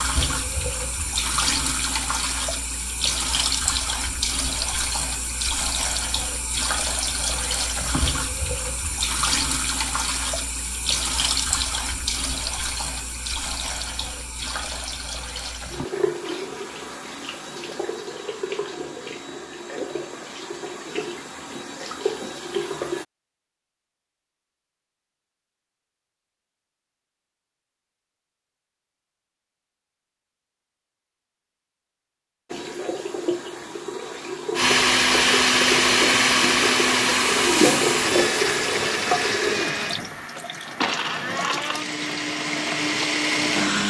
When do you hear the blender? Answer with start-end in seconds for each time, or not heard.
34.5-43.8.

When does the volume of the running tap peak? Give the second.
38 s.